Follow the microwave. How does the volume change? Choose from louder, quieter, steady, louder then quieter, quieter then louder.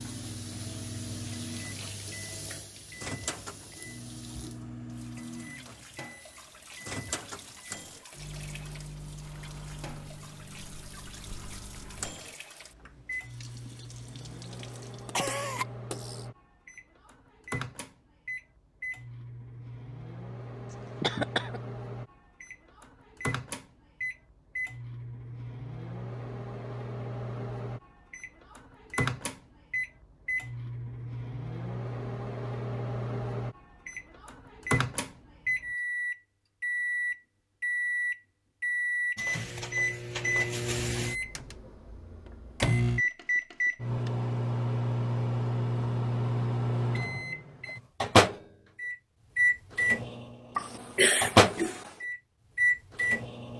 louder.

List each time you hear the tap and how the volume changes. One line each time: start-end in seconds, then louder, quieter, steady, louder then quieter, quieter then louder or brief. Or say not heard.
0.0-15.2 quieter.